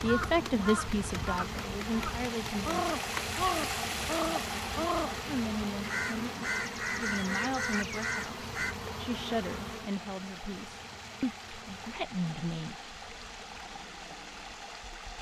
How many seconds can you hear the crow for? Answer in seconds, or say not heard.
9 s.